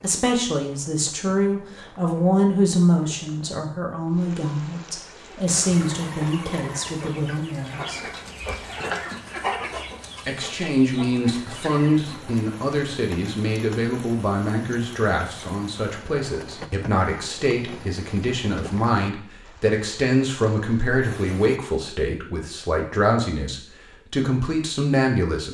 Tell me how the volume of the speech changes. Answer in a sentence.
The loudness of the speech stays about the same.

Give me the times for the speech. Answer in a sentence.
The speech can be heard from 0.0 to 8.0 s and from 10.2 to 25.4 s.